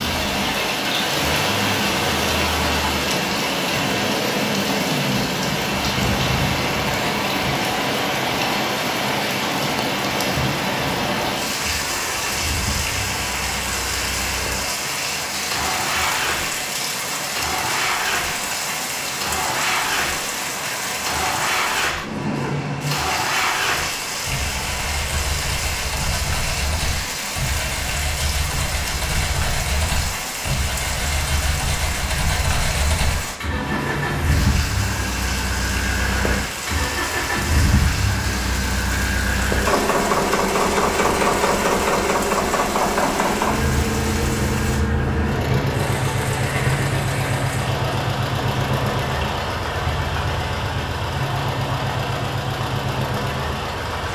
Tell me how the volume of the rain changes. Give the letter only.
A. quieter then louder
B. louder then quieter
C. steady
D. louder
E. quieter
E.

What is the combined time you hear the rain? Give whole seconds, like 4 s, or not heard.
54 s.